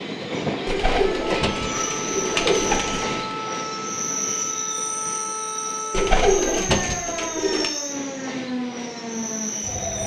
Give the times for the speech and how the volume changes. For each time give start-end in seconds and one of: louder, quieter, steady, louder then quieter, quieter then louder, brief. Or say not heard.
not heard.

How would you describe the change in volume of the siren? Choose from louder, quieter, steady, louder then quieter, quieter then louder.
steady.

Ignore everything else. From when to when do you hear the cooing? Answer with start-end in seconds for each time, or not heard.
0.7-3.1, 5.9-7.7.